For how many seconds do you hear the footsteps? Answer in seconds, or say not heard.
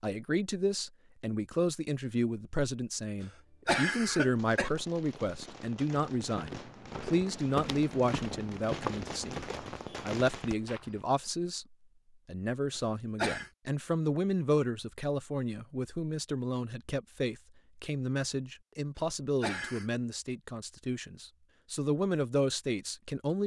5 s.